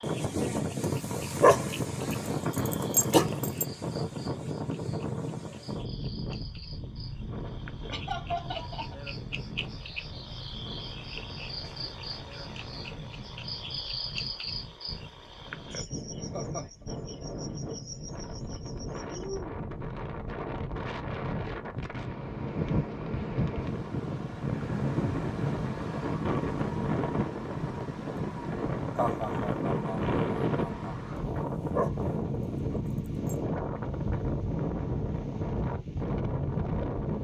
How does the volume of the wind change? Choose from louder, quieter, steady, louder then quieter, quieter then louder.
quieter then louder.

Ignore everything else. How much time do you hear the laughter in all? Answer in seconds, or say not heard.
4 s.